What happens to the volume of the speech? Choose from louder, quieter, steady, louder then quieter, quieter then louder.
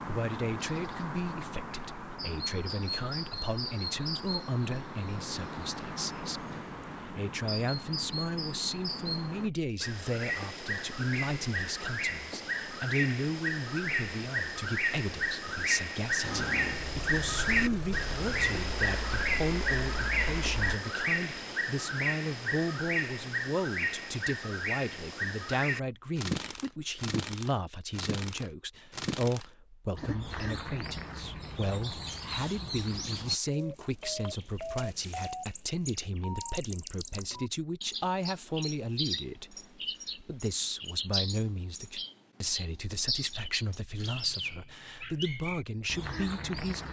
steady.